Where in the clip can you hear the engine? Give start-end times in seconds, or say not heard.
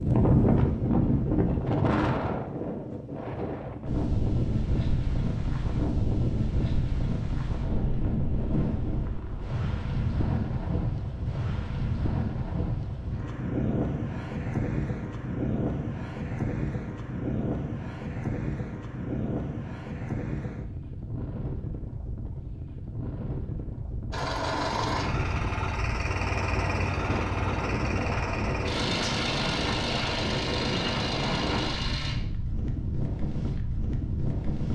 24.1-32.1.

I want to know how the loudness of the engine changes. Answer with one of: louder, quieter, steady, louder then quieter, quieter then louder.
steady.